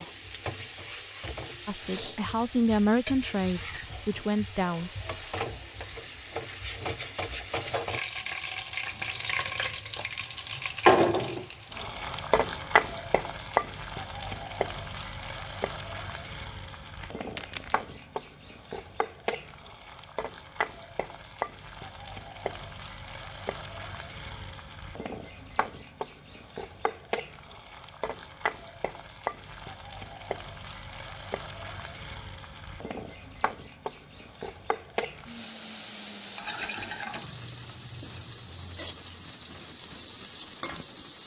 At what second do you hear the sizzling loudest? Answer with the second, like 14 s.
11 s.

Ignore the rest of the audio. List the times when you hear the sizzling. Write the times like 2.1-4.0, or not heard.
0.0-41.2.